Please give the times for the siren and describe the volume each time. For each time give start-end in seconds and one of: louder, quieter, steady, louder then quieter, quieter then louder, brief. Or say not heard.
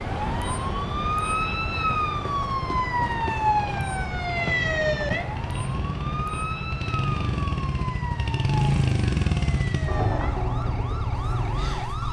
0.0-12.0 quieter.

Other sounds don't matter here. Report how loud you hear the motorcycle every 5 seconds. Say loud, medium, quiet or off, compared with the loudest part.
medium, loud, loud.